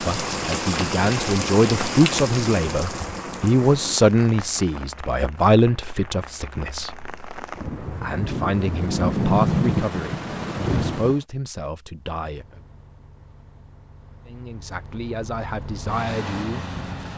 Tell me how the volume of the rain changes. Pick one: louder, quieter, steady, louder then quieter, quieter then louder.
quieter then louder.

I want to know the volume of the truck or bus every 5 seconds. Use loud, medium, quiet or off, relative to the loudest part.
off, off, quiet, loud.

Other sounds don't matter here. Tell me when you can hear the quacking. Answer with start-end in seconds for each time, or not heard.
not heard.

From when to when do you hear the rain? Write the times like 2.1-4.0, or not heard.
0.0-11.2.